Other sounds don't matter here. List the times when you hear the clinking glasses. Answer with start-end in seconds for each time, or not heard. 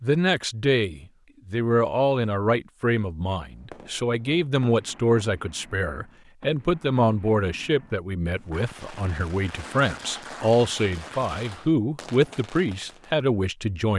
not heard.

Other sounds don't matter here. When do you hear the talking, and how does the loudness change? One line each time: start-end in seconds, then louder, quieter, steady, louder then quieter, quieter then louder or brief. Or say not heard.
0.0-13.9 steady.